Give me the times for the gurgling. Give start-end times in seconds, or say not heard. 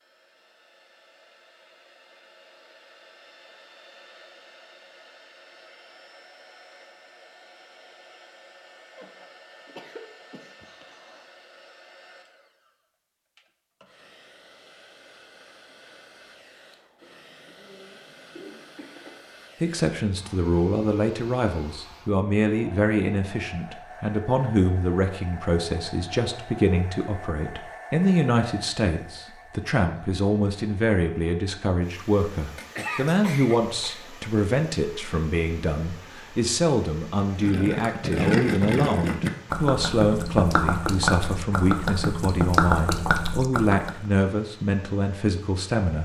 37.4-44.0.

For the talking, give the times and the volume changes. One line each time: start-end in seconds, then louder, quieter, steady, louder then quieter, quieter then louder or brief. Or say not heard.
19.6-45.9 steady.